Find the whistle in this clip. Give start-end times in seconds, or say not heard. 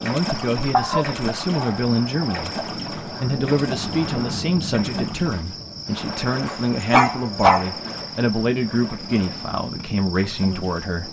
not heard.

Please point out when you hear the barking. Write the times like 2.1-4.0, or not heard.
0.7-2.4, 6.5-7.8.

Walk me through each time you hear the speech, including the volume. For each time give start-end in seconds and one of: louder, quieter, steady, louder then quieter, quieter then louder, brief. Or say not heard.
0.0-11.0 steady.